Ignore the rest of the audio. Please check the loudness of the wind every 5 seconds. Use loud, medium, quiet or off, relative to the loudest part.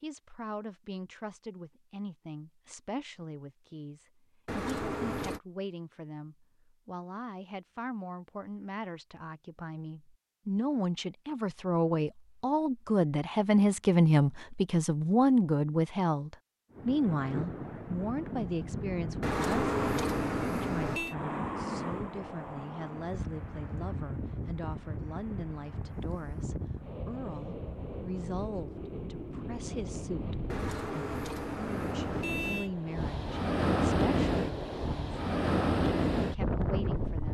off, off, off, medium, medium, medium, loud, loud.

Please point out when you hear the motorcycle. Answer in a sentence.
The motorcycle can't be heard in this clip.